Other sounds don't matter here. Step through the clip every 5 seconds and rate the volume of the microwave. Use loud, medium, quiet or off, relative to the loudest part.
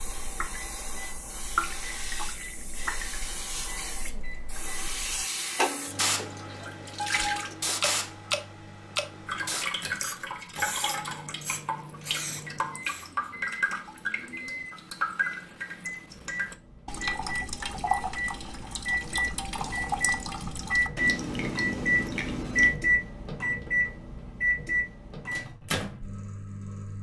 quiet, quiet, quiet, medium, loud, medium.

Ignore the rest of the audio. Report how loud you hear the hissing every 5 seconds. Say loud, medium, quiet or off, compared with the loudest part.
medium, loud, loud, off, off, off.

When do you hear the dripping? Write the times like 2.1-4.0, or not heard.
0.0-22.8.